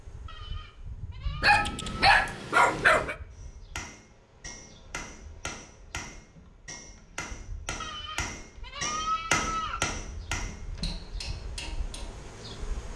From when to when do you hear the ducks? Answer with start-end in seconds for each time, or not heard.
not heard.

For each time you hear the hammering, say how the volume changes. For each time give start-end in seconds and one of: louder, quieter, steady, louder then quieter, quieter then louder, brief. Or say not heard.
3.4-12.1 louder then quieter.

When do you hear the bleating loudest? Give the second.
9 s.